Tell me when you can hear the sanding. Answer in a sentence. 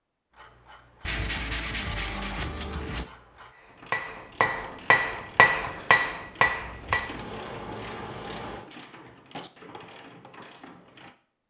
You can hear the sanding from 1.0 to 3.0 s and from 6.5 to 8.7 s.